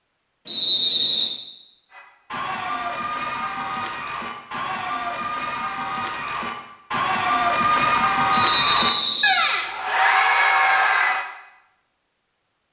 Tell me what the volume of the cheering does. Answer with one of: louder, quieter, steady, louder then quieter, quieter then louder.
louder.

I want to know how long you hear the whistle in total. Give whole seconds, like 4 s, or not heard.
2 s.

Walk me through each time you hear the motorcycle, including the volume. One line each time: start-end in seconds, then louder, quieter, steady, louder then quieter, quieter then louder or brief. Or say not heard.
not heard.